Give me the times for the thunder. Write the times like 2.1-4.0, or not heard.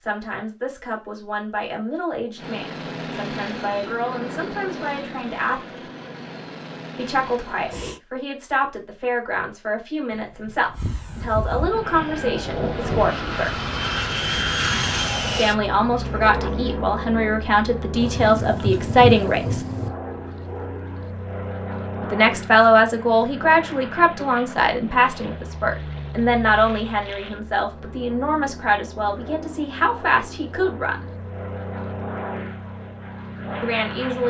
10.1-13.1, 18.0-19.9.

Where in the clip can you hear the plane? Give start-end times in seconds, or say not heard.
2.4-8.0, 10.7-34.2.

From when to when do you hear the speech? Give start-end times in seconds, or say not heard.
0.0-5.8, 7.0-13.6, 15.2-19.6, 22.0-31.1, 33.6-34.2.